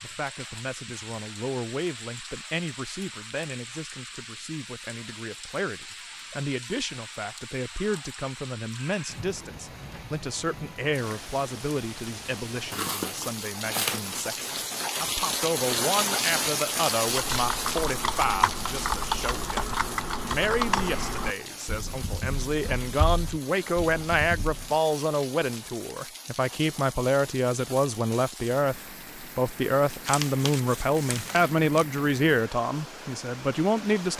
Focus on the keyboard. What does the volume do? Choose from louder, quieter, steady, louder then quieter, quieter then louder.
quieter.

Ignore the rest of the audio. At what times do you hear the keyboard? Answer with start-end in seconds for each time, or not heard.
17.1-24.8.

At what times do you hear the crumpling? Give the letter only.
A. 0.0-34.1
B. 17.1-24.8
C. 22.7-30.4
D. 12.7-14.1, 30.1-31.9
D.